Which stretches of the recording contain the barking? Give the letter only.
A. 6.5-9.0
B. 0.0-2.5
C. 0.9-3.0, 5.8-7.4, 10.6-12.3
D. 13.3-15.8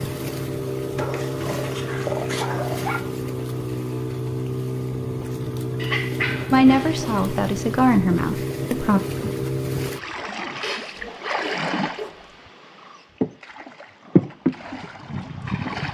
C.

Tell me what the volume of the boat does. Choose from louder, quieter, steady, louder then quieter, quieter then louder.
steady.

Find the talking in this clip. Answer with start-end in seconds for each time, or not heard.
6.5-9.0.